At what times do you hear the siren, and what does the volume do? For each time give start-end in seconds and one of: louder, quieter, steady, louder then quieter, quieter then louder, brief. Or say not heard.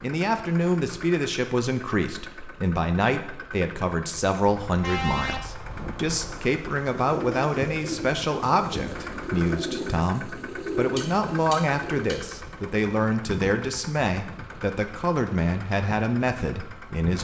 not heard.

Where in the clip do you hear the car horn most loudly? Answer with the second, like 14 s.
5 s.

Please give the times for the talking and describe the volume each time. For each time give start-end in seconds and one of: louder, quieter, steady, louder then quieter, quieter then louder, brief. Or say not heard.
0.0-17.1 steady.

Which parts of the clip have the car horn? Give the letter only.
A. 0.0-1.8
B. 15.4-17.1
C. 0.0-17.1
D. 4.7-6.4
D.